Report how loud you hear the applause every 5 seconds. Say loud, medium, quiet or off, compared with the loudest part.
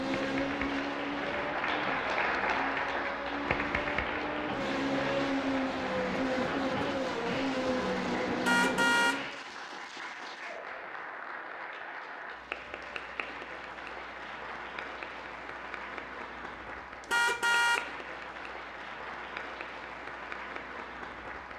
loud, medium, medium, medium, medium.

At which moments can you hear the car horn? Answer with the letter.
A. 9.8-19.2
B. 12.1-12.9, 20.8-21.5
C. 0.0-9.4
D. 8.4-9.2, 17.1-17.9
D.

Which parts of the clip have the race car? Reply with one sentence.
The race car can be heard from 0.0 to 9.4 s.